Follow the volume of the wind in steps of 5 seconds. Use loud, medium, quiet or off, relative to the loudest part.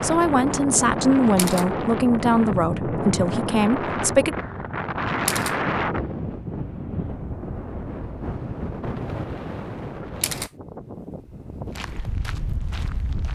loud, loud, medium.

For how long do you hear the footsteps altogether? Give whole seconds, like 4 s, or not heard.
2 s.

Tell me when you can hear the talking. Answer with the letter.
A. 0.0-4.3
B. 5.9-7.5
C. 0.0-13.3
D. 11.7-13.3
A.